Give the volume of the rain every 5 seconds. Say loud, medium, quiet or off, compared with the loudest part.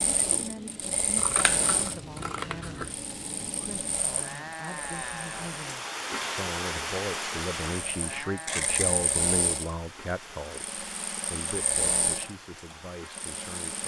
medium, loud, medium.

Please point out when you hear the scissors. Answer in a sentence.
You can hear the scissors from 1.1 to 2.9 s and from 8.4 to 9.0 s.